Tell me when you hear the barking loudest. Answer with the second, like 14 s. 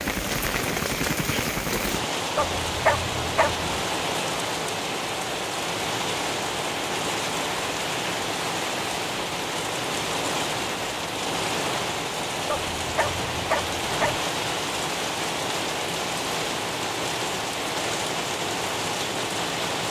3 s.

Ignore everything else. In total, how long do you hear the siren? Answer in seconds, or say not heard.
not heard.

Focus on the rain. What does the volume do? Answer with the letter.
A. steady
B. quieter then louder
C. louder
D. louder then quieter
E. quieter
A.